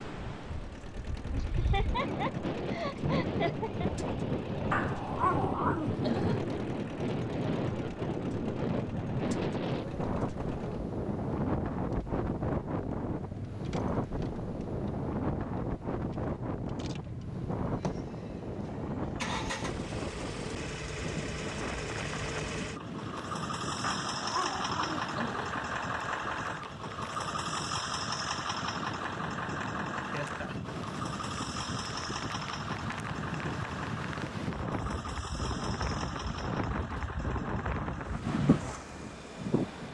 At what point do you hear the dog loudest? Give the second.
5 s.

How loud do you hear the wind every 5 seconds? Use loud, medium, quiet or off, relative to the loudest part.
loud, loud, loud, loud, medium, medium, medium, loud.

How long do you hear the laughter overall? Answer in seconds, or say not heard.
3 s.